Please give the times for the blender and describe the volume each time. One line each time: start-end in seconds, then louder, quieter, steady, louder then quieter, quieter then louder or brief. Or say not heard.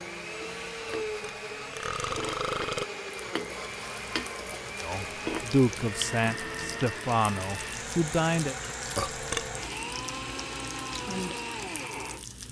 0.0-12.3 steady.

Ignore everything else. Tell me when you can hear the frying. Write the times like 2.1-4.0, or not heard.
0.0-12.4.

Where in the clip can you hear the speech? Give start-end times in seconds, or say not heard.
4.8-8.6.